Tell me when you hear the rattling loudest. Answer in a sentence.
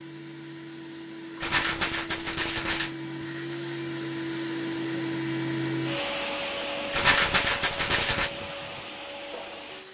The volume of the rattling peaks at 7 seconds.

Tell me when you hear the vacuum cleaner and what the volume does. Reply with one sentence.
You can hear the vacuum cleaner from 0.0 to 9.9 s, getting louder then quieter.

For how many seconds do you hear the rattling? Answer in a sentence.
You can hear the rattling for 3 seconds altogether.